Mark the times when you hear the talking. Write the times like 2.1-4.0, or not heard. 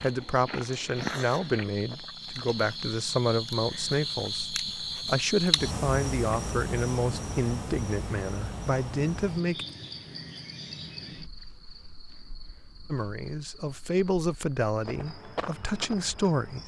0.0-9.7, 12.9-16.6.